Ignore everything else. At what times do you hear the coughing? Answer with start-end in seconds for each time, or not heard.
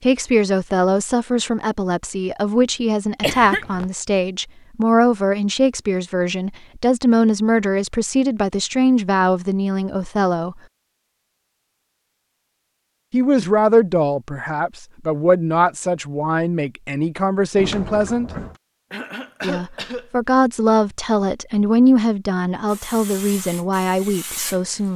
3.2-3.9, 18.9-20.1.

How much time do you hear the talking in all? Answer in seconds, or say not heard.
21 s.